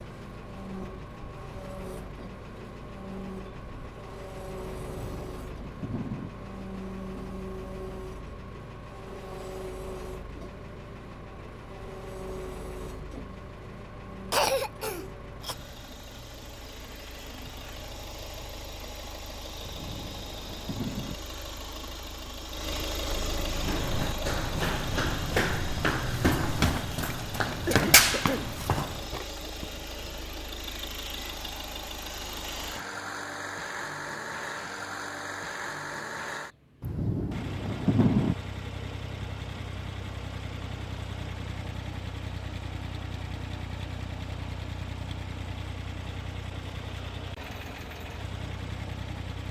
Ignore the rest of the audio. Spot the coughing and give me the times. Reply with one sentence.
The coughing can be heard from 14.3 to 15.6 s and from 27.6 to 28.5 s.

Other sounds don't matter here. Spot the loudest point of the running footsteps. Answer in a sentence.
The loudest moment of the running footsteps is at 28 seconds.